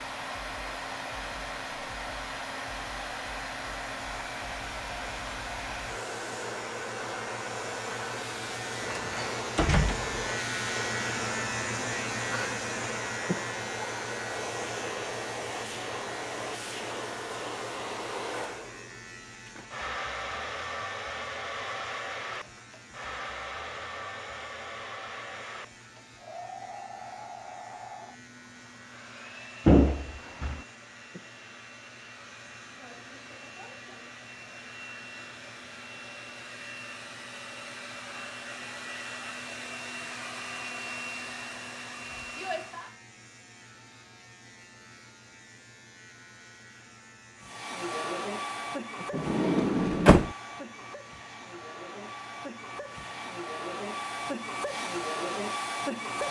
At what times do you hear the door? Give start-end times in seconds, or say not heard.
8.8-10.2, 29.6-30.6, 49.1-50.3.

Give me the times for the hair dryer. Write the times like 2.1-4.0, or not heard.
0.0-43.0, 47.4-56.2.